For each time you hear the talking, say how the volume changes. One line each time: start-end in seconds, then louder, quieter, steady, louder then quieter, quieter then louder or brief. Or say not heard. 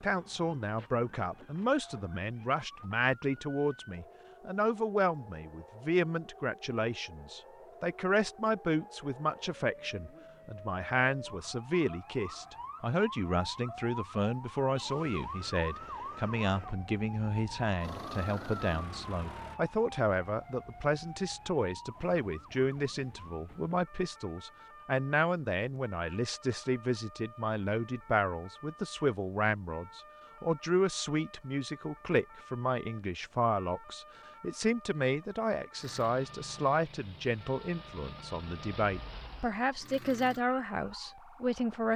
0.0-41.9 steady.